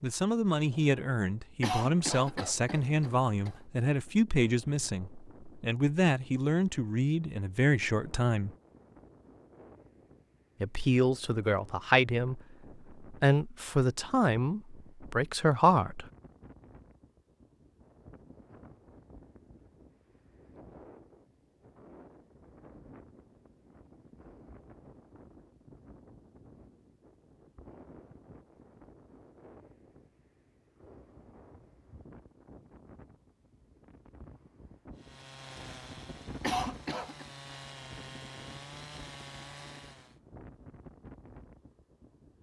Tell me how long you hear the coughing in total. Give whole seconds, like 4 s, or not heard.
3 s.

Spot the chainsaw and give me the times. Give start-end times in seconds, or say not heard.
35.0-40.2.